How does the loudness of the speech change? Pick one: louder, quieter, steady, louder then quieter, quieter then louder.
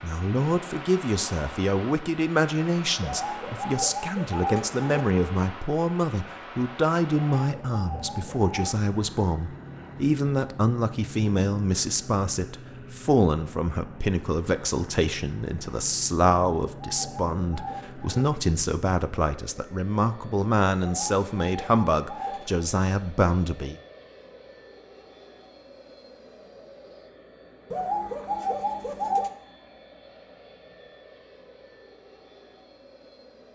steady.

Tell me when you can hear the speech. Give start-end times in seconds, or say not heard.
0.0-23.8.